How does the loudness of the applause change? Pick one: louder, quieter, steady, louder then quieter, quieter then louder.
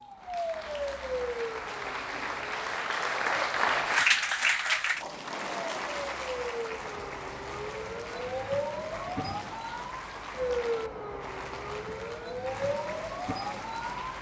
louder then quieter.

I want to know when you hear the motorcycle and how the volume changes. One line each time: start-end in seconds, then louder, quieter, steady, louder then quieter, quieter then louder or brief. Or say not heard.
not heard.